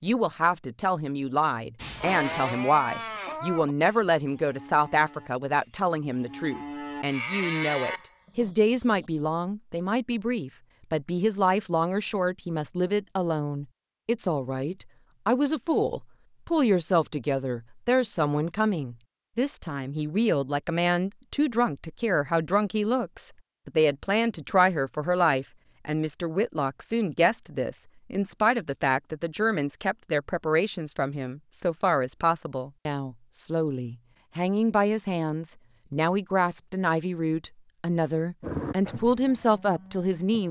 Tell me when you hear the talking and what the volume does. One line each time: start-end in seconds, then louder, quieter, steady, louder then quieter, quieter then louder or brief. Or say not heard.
0.0-40.4 steady.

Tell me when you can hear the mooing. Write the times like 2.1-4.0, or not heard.
1.8-9.1, 38.4-40.4.